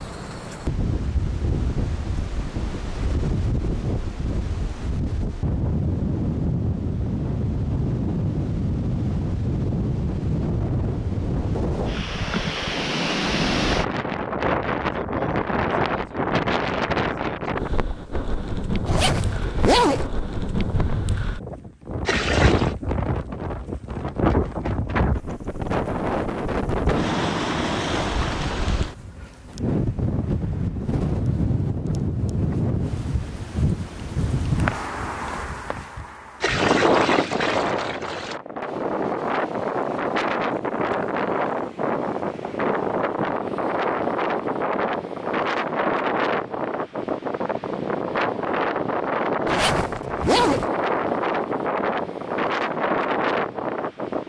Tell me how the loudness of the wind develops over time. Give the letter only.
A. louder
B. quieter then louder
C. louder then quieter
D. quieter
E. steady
E.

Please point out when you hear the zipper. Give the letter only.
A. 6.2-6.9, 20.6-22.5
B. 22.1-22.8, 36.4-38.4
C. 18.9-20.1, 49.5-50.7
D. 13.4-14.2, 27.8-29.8
C.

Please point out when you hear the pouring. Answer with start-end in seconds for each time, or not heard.
22.1-22.8, 36.4-38.4.